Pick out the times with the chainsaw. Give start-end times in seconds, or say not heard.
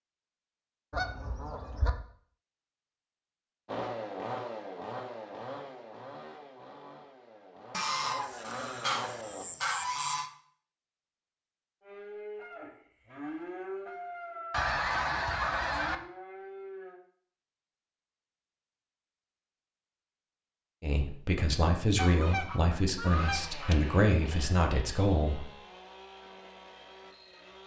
3.6-9.4, 23.2-27.6.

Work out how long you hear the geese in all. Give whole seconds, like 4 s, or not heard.
7 s.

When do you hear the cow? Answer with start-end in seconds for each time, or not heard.
11.8-17.0.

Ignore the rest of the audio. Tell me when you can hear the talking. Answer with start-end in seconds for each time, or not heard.
20.8-25.5.